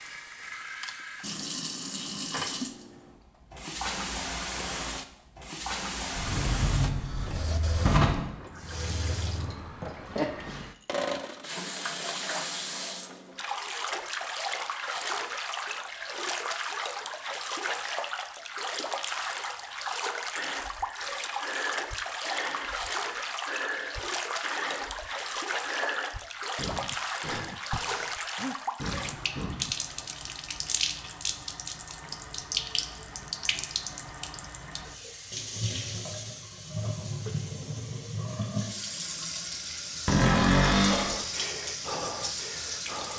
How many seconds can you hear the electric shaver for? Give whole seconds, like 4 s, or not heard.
not heard.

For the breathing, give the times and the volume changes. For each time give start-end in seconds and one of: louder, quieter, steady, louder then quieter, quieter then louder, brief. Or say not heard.
20.4-29.8 steady
40.9-43.1 brief.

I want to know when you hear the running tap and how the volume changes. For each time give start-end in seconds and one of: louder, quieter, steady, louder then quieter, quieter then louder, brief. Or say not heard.
0.0-43.1 steady.